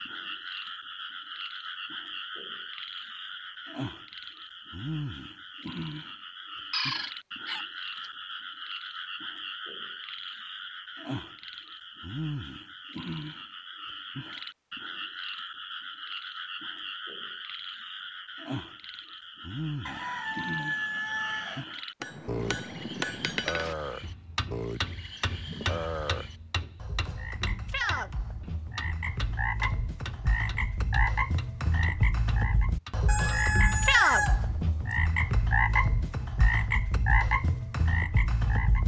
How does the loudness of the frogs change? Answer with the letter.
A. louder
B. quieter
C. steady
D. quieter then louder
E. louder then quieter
A.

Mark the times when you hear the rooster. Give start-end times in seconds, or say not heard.
6.7-8.1, 19.9-21.6, 33.0-35.0.